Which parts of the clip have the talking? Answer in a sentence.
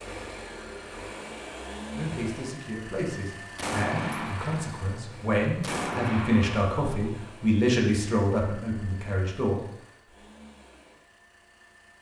You can hear the talking from 1.9 to 9.7 s.